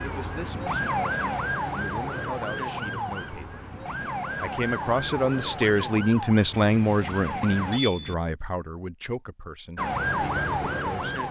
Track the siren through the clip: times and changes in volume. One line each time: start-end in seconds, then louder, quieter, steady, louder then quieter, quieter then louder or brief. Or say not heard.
0.0-7.8 quieter
9.8-11.2 brief.